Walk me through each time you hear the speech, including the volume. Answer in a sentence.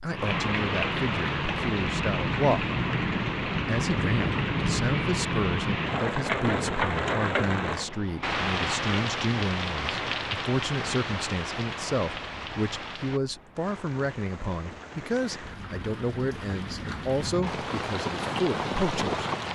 You can hear the speech briefly from 0.0 to 2.7 s; and from 3.6 to 19.2 s, at a steady volume.